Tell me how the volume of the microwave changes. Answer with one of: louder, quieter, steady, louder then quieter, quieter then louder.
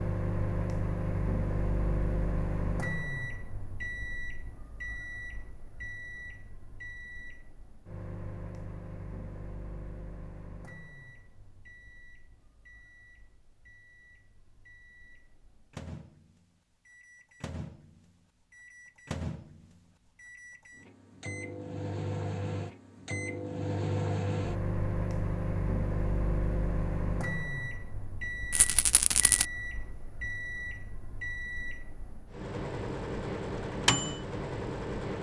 quieter then louder.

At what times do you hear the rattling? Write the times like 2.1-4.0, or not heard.
28.5-29.4.